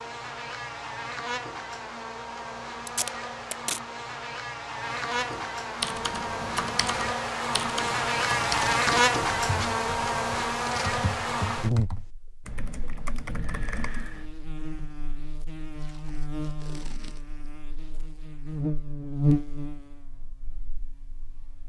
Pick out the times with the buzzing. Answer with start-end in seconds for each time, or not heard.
0.0-21.6.